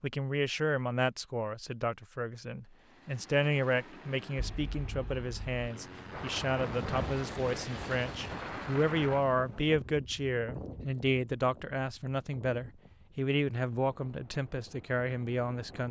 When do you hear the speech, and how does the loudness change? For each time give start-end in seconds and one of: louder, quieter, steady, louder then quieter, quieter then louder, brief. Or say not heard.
0.0-15.8 steady.